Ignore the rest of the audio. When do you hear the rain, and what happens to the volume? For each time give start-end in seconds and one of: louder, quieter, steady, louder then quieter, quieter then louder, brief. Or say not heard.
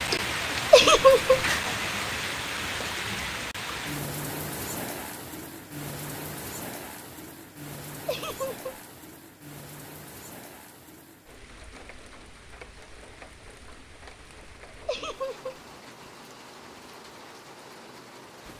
0.0-18.5 quieter.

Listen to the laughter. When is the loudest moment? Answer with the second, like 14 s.
1 s.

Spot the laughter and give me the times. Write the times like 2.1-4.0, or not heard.
0.7-1.4, 8.1-8.7, 14.8-15.5.